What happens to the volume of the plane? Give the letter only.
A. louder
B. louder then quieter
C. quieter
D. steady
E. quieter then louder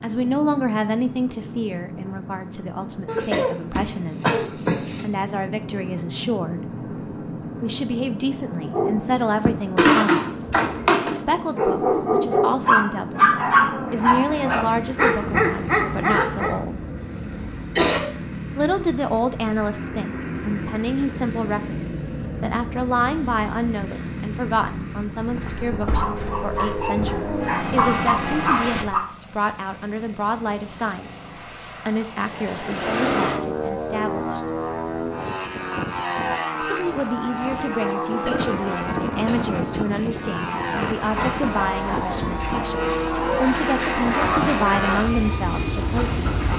A.